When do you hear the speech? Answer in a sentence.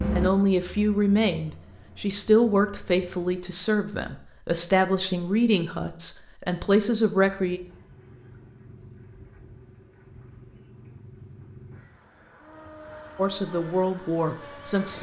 You can hear the speech from 0.1 to 7.6 s and from 13.2 to 14.9 s.